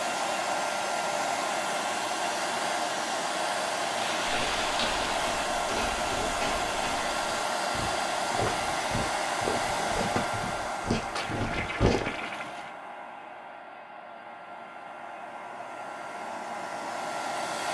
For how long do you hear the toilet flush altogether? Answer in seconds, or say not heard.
3 s.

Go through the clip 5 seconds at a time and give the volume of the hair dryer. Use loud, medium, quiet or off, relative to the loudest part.
loud, loud, medium, medium.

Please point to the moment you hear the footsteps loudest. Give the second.
12 s.